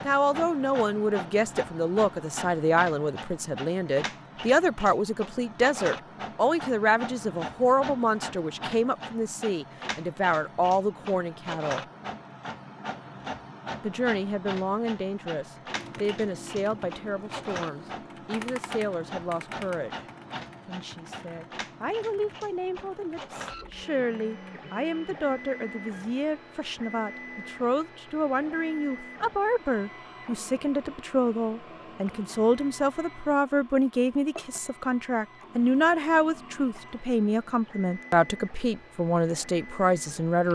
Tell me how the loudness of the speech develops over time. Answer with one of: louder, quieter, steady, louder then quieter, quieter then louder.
quieter then louder.